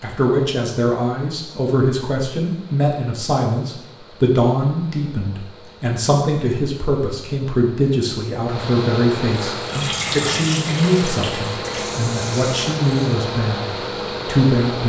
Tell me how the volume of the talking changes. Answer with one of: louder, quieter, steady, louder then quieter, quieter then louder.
steady.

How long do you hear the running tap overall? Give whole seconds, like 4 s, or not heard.
4 s.